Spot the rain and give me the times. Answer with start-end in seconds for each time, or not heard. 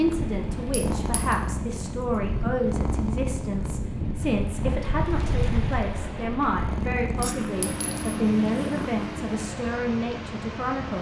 0.0-10.9.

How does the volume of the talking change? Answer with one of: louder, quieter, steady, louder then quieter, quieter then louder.
steady.